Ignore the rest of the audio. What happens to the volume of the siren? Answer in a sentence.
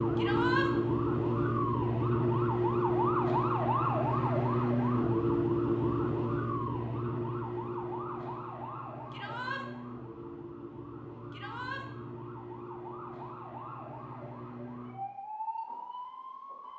The loudness of the siren goes down.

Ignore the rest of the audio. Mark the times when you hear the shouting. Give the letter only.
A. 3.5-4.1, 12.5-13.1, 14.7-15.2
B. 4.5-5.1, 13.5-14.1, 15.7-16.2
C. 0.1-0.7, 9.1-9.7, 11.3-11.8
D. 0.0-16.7
C.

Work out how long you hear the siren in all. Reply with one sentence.
You can hear the siren for 17 seconds altogether.